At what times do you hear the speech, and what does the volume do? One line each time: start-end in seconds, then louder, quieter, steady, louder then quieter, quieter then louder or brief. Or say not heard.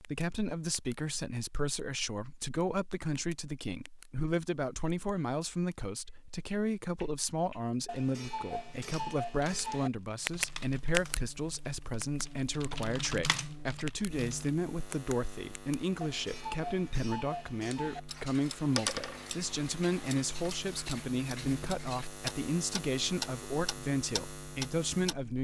0.0-25.3 steady.